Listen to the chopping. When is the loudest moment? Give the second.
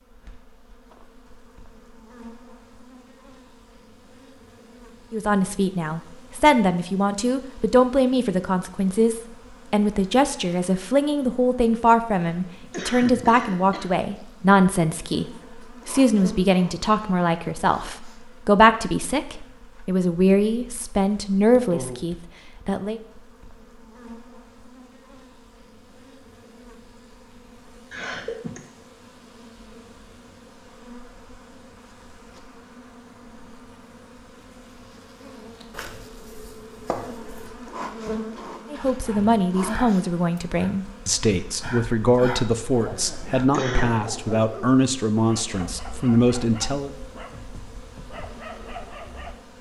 37 s.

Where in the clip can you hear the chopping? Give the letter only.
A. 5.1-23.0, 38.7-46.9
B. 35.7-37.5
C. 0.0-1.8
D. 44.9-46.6
B.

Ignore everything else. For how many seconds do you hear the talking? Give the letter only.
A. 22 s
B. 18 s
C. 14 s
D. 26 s
D.